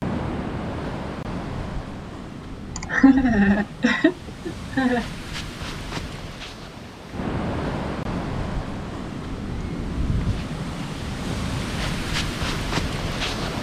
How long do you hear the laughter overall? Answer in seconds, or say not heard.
2 s.